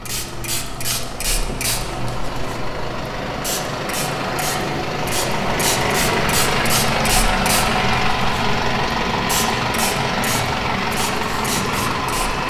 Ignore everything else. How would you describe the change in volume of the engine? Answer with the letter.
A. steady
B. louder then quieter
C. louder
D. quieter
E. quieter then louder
C.